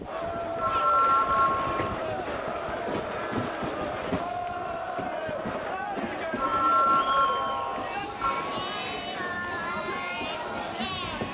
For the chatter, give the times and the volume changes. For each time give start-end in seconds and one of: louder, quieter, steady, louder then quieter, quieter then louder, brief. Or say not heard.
0.0-11.3 steady.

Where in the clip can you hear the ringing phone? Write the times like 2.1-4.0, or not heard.
0.6-1.9, 6.3-8.4.